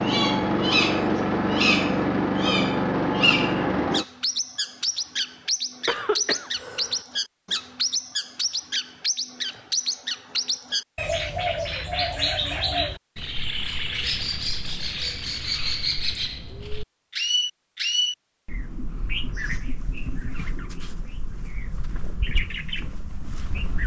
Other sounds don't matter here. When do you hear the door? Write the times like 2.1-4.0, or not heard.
not heard.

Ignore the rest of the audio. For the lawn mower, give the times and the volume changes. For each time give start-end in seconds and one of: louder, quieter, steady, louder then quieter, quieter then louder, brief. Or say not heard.
0.0-4.0 steady.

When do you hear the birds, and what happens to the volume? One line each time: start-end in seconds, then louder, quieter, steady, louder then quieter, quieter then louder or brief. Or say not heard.
0.0-23.8 quieter.